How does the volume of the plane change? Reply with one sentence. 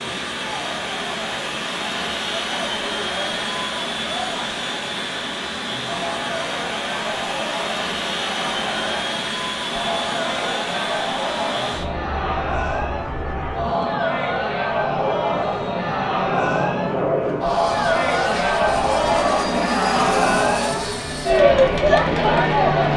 The loudness of the plane stays about the same.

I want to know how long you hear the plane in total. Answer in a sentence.
You can hear the plane for 23 seconds altogether.